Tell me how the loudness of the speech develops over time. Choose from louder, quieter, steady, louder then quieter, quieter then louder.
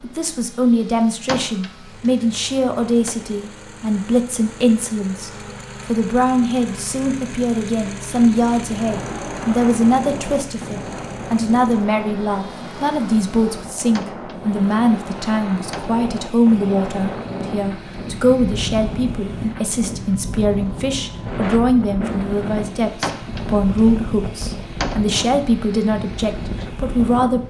steady.